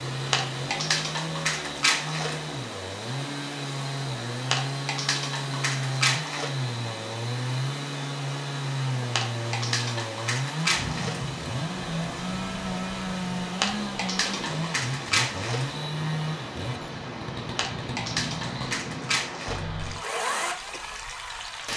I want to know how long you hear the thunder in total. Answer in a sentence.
You can hear the thunder for 3 seconds altogether.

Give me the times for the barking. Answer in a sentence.
The barking can be heard from 0.3 to 2.5 s, from 4.5 to 6.5 s, from 9.2 to 11.3 s, from 13.6 to 15.7 s and from 17.6 to 19.6 s.